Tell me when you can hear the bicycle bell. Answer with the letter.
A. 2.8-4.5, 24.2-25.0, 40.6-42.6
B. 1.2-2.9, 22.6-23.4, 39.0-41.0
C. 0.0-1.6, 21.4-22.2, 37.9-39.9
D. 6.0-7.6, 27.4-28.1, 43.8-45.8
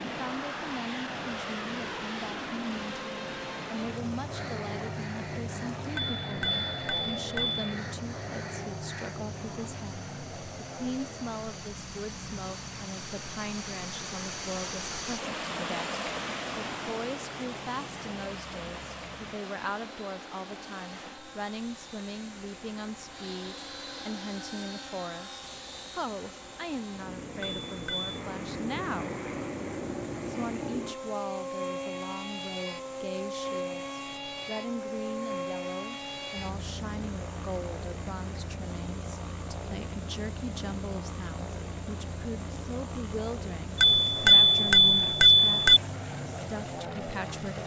D.